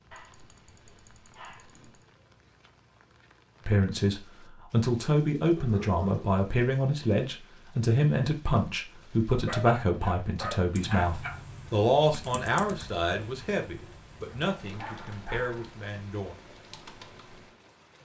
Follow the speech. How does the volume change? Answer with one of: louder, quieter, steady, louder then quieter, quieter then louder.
quieter.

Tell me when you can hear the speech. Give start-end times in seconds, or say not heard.
3.6-16.4.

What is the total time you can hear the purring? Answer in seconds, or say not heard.
not heard.